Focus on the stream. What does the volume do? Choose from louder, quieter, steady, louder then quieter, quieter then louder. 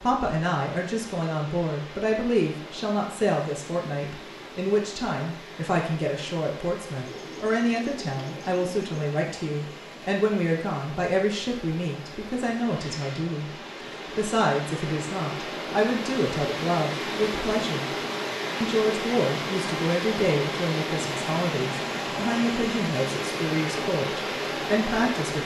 louder.